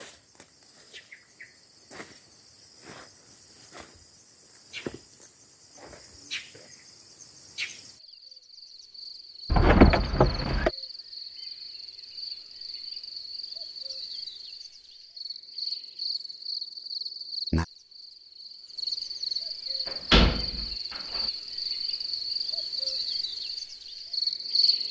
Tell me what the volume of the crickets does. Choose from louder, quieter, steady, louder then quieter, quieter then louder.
louder.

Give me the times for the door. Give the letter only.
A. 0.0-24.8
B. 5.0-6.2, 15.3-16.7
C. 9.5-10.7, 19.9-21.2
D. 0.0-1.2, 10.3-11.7
C.